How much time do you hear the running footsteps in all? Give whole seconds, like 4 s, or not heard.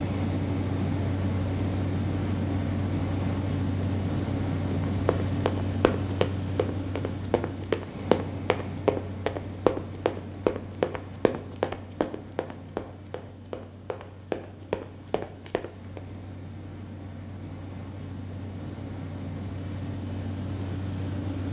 11 s.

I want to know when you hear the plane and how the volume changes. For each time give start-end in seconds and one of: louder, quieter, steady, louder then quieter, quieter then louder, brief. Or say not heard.
0.0-21.4 quieter then louder.